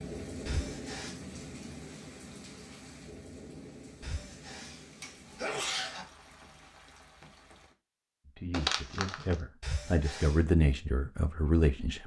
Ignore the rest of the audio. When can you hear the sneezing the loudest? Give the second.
6 s.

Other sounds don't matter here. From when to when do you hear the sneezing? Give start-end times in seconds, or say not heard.
0.5-1.1, 4.0-6.0, 9.6-10.4.